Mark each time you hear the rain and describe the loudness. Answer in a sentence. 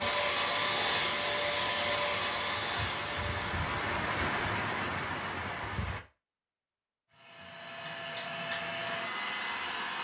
The rain can be heard from 0.0 to 6.0 s, getting louder.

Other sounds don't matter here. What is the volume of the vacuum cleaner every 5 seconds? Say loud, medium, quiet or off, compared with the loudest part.
loud, medium.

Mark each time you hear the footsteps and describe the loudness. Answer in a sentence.
The footsteps can't be heard in this clip.